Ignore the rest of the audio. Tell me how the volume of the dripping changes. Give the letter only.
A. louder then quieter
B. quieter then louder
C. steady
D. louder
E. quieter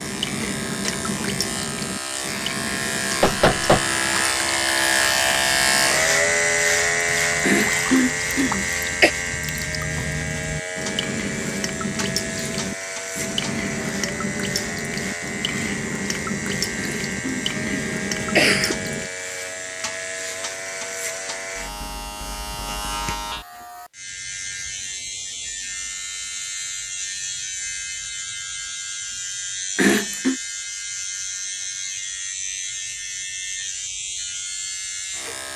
B.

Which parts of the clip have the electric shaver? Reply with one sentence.
The electric shaver can be heard from 0.0 to 35.5 s.